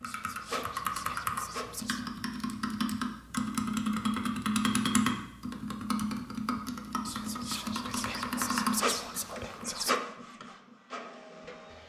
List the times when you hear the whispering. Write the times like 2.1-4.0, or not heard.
0.1-2.1, 7.0-10.0.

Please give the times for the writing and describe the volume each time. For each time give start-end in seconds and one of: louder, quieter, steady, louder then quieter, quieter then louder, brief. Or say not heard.
not heard.